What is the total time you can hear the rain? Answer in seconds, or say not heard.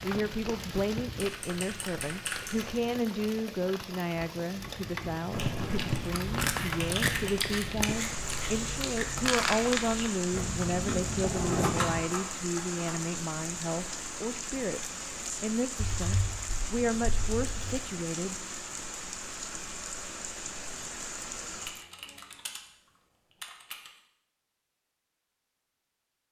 22 s.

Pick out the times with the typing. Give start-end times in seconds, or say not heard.
1.2-2.8, 5.3-7.4, 11.6-13.2, 15.8-17.8, 21.6-22.6, 23.4-23.9.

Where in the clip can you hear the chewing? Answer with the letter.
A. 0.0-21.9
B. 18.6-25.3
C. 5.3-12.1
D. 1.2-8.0
C.